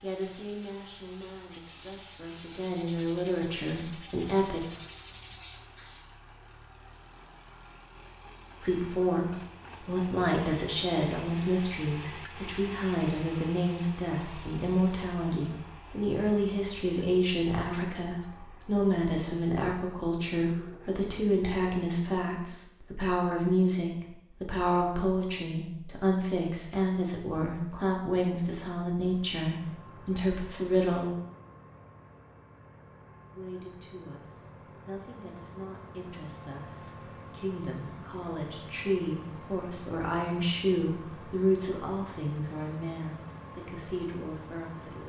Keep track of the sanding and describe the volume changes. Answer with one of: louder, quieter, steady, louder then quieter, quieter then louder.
louder.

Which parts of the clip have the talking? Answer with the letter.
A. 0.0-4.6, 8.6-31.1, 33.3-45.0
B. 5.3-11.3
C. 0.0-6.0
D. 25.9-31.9
A.